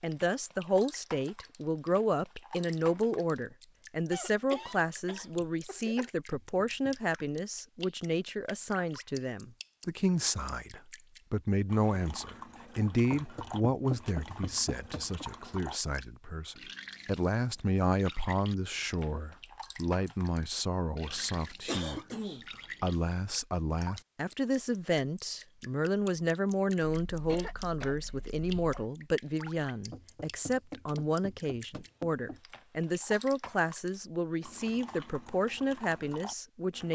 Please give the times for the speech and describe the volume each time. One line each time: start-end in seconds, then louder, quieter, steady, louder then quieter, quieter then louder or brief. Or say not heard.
0.0-36.8 steady.